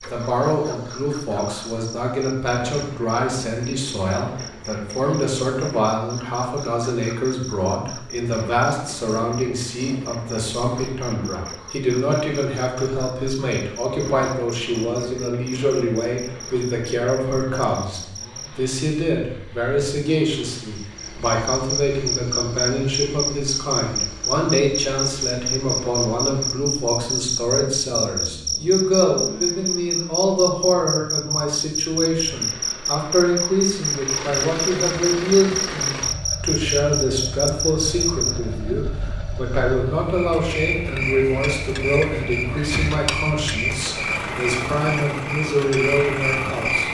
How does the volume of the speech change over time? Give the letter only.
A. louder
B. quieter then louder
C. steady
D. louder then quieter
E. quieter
C.